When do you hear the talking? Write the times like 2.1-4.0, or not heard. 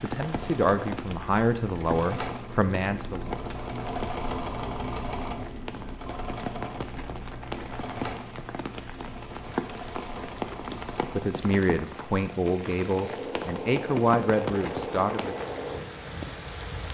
0.0-3.4, 11.2-15.3.